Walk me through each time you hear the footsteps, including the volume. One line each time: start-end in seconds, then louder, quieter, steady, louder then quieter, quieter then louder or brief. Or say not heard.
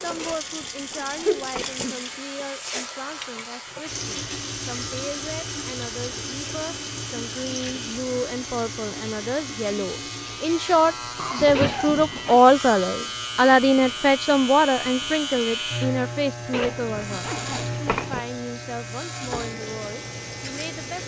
not heard.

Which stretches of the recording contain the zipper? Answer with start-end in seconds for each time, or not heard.
0.1-1.9, 11.5-12.4, 16.5-18.2.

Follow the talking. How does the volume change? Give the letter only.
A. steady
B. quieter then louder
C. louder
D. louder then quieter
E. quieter
D.